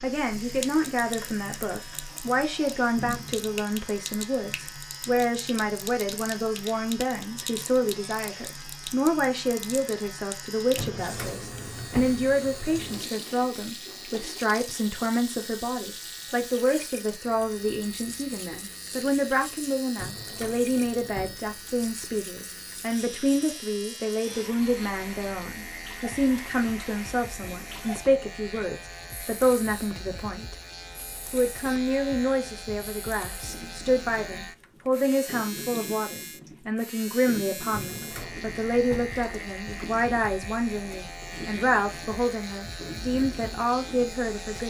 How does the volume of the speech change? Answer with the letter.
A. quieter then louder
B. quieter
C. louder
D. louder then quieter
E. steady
E.